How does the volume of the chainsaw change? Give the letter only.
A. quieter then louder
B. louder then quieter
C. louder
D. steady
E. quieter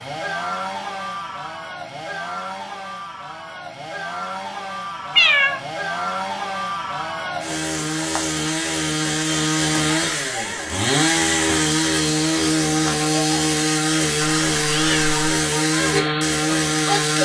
C.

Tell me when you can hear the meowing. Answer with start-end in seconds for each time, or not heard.
5.2-5.6, 14.2-15.2.